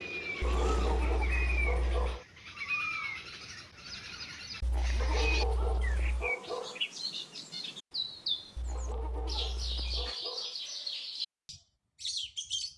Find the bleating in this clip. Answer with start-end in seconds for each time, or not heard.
0.4-2.2, 4.6-6.3, 8.6-10.2.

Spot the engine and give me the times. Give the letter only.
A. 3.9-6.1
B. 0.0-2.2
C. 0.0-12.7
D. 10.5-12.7
B.